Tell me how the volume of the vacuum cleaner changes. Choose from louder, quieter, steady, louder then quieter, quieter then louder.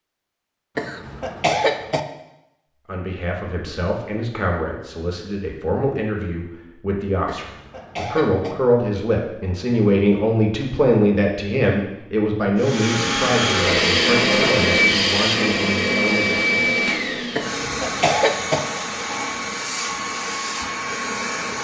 quieter.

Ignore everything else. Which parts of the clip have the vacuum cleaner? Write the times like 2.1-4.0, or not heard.
12.6-21.5.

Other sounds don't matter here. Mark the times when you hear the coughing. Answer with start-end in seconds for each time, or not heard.
0.8-2.0, 7.2-8.6, 17.4-18.6.